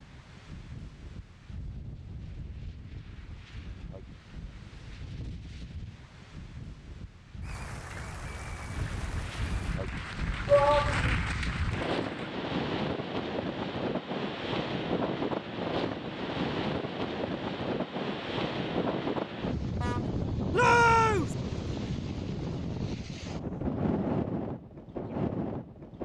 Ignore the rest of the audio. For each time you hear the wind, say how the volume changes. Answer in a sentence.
You can hear the wind from 0.0 to 26.0 s, getting louder.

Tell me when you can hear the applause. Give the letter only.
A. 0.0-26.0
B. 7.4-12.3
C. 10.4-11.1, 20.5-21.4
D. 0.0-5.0
B.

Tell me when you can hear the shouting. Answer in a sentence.
The shouting can be heard from 10.4 to 11.1 s and from 20.5 to 21.4 s.